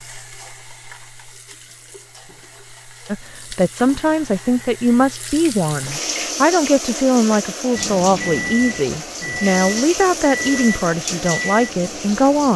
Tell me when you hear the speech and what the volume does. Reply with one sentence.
You can hear the speech from 3.0 to 12.5 s, at a steady volume.